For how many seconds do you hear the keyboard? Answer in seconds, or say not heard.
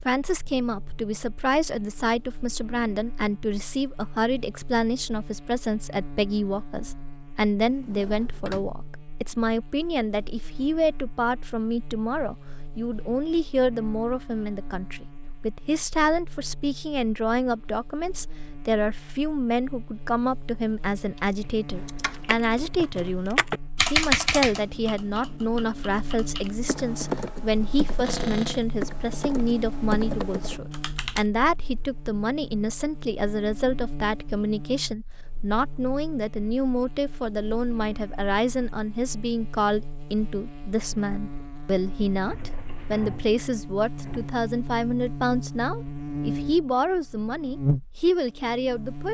10 s.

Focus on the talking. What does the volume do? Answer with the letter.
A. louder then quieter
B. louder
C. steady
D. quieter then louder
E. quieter
C.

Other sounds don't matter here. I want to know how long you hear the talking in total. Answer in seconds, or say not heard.
49 s.